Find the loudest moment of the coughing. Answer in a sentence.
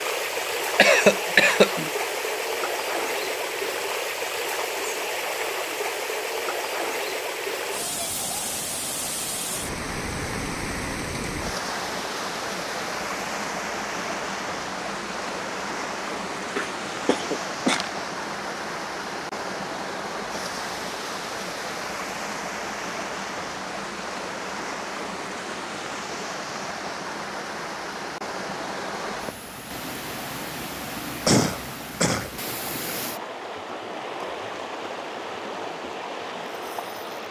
The loudest moment of the coughing is at 1 second.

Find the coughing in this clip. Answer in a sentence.
You can hear the coughing from 0.8 to 1.9 s, from 16.6 to 17.9 s and from 31.2 to 32.3 s.